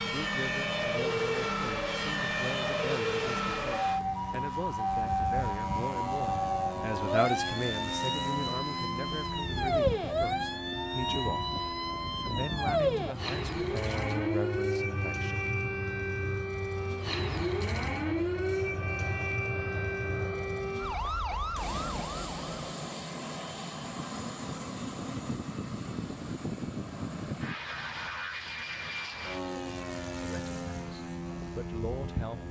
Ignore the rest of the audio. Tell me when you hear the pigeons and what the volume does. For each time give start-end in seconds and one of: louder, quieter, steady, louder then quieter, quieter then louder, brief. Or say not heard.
not heard.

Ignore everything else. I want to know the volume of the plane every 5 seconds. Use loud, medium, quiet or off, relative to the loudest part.
loud, loud, loud, medium, loud, loud, loud.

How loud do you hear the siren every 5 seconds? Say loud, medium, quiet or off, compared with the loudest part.
loud, loud, loud, loud, loud, off, off.